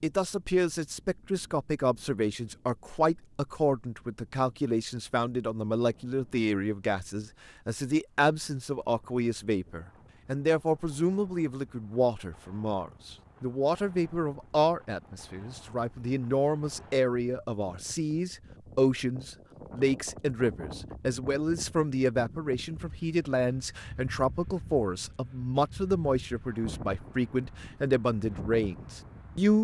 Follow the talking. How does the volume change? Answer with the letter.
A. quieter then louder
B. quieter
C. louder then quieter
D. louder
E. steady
E.